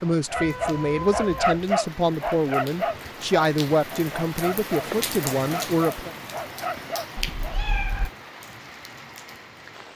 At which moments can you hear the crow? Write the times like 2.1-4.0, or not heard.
not heard.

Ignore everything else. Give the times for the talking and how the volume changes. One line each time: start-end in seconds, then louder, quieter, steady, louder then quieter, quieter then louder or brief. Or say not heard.
0.0-6.1 steady.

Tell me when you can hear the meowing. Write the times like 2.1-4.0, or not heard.
0.3-1.6, 7.2-8.1.